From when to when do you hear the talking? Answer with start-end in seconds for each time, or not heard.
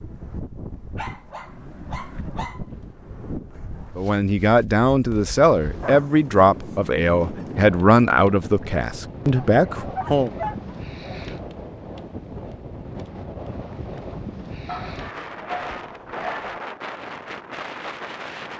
4.0-10.3.